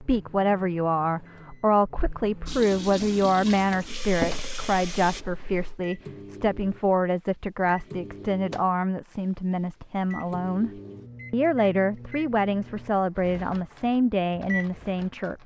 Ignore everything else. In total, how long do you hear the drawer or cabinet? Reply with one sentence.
You can hear the drawer or cabinet for 2 seconds altogether.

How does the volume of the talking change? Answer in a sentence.
The loudness of the talking stays about the same.